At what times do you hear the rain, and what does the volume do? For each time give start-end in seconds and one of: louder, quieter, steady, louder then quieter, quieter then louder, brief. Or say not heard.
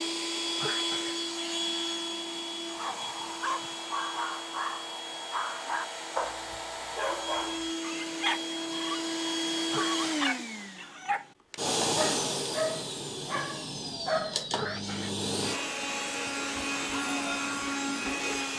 not heard.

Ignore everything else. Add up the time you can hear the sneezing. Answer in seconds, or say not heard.
2 s.